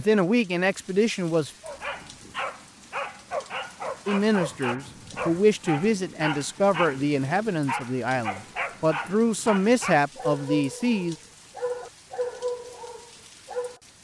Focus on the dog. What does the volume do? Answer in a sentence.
The volume of the dog stays about the same.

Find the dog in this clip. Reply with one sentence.
You can hear the dog from 1.6 to 13.8 s.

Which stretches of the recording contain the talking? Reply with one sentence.
The talking can be heard from 0.0 to 1.5 s and from 4.0 to 11.2 s.